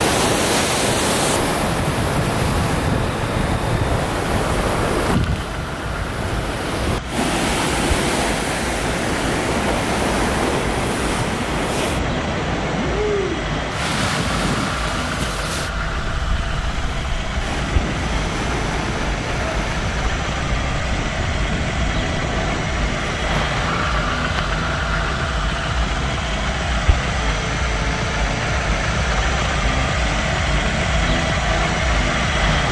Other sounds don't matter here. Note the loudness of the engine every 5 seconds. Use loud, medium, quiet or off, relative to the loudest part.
medium, medium, medium, medium, loud, loud, loud.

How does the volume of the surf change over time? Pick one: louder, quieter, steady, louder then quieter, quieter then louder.
quieter.